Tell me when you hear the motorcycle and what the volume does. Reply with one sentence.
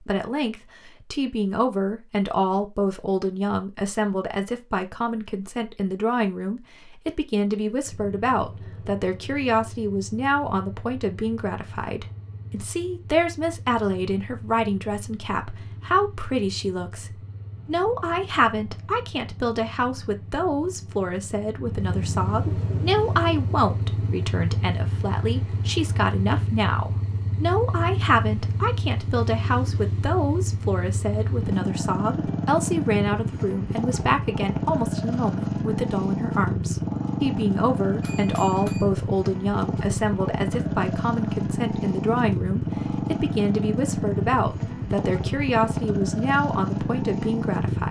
The motorcycle can be heard from 7.8 to 47.8 s, getting louder.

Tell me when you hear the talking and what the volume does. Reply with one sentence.
The talking can be heard from 0.1 to 47.8 s, at a steady volume.